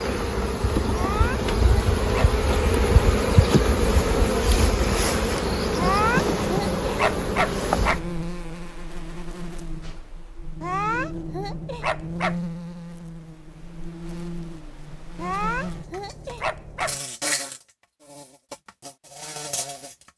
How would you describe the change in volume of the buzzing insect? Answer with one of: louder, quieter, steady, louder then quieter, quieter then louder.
quieter.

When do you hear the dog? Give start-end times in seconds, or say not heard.
0.9-2.4, 5.8-8.3, 10.6-12.4, 15.2-17.0.